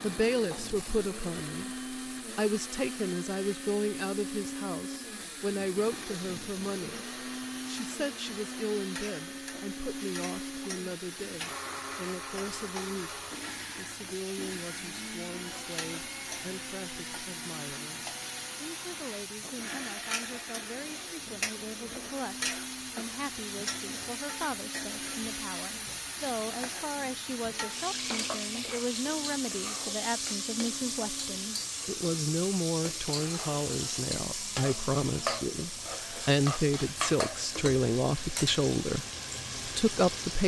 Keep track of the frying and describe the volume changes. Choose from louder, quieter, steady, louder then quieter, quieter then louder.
louder.